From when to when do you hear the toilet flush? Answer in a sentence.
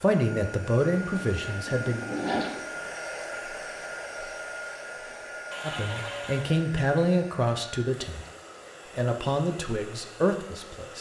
You can hear the toilet flush from 1.3 to 2.5 s and from 5.5 to 6.5 s.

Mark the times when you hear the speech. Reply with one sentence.
You can hear the speech from 0.0 to 2.0 s, from 5.6 to 8.2 s and from 8.9 to 10.9 s.